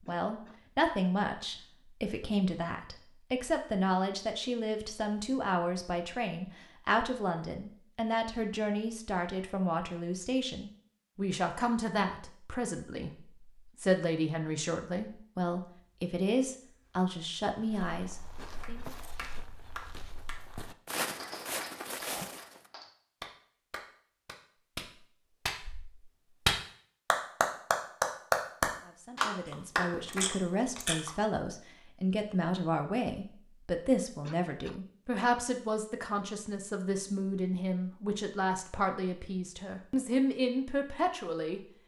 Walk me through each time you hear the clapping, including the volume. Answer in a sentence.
You can hear the clapping from 18.6 to 30.2 s, getting louder.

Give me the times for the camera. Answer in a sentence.
You can hear the camera from 29.4 to 31.1 s.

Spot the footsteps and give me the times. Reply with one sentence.
The footsteps can be heard from 16.6 to 22.7 s.